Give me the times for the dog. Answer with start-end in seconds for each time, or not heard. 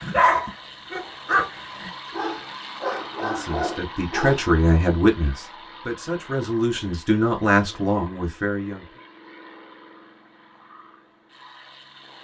0.0-4.5.